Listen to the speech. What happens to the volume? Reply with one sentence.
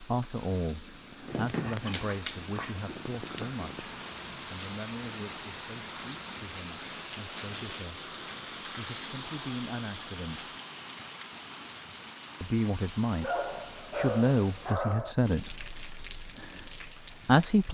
The loudness of the speech goes down, then up.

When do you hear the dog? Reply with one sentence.
The dog can be heard from 1.2 to 3.8 s and from 13.2 to 15.2 s.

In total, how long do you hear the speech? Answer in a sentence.
You can hear the speech for 16 seconds altogether.